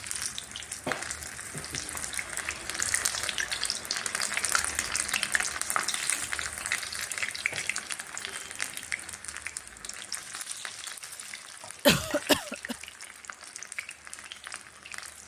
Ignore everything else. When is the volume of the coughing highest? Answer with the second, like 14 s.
12 s.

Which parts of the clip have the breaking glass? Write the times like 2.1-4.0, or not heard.
not heard.